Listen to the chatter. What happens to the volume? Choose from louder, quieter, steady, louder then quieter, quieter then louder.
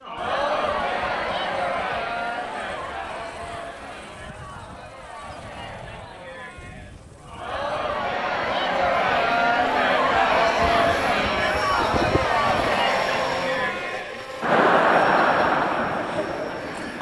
quieter then louder.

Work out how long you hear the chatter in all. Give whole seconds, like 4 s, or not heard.
17 s.